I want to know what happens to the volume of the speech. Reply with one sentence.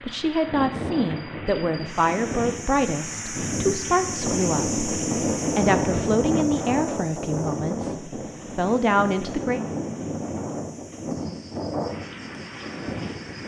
The volume of the speech stays about the same.